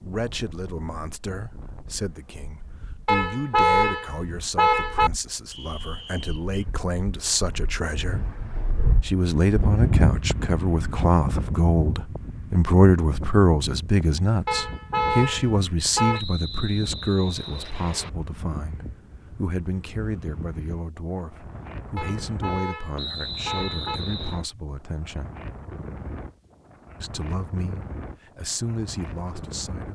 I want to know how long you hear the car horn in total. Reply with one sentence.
You can hear the car horn for 6 seconds altogether.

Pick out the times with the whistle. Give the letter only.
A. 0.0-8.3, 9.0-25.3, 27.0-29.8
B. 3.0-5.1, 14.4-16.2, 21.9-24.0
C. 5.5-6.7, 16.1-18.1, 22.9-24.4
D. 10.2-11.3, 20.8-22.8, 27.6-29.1
C.